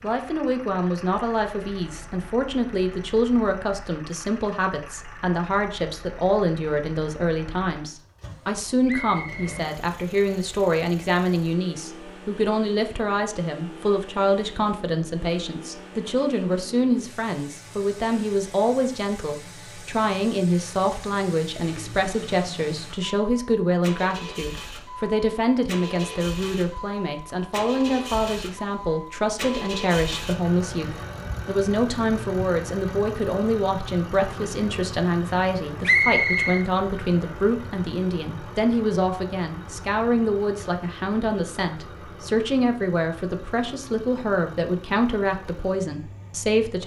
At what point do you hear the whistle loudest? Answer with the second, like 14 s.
36 s.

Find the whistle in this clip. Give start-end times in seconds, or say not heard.
8.8-9.5, 35.9-36.6.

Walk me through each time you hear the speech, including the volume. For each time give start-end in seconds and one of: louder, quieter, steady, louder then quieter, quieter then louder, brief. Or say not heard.
0.0-46.8 steady.